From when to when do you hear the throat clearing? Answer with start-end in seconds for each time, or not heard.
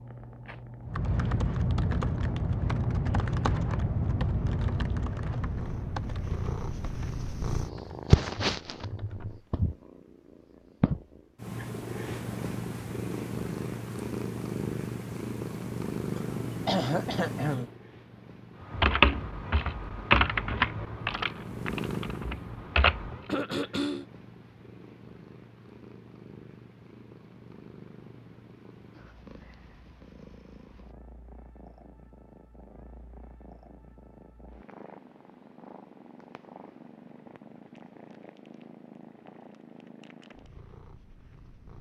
16.2-17.6, 23.2-24.1.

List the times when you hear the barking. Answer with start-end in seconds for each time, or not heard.
not heard.